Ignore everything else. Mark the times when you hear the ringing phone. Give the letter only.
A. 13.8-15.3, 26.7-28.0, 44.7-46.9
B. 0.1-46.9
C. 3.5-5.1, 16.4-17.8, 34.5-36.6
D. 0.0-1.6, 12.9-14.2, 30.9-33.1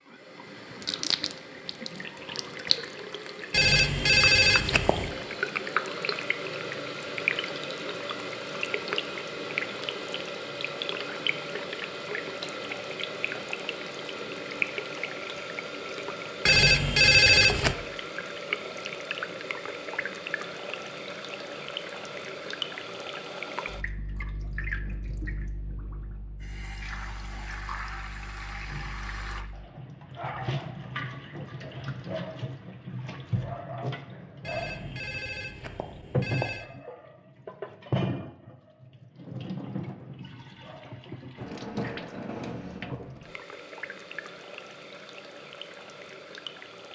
C.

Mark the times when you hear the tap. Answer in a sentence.
You can hear the tap from 0.1 to 46.9 s.